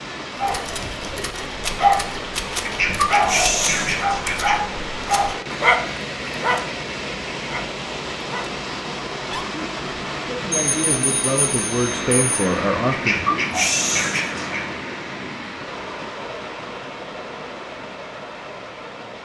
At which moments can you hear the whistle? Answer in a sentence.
You can't hear the whistle here.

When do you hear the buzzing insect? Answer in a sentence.
The buzzing insect can't be heard in this clip.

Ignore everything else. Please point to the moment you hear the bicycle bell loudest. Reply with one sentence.
The loudest moment of the bicycle bell is at 11 seconds.